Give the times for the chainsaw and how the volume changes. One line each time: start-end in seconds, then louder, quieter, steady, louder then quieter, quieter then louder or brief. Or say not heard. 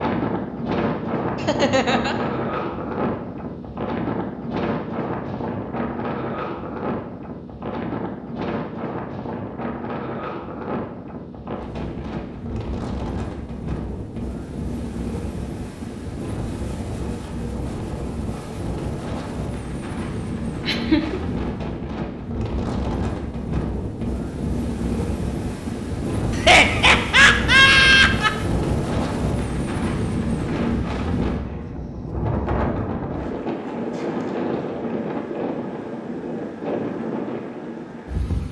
not heard.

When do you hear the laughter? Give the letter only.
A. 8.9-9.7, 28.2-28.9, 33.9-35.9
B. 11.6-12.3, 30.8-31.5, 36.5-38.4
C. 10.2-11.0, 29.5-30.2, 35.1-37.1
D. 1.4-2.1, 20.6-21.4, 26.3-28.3
D.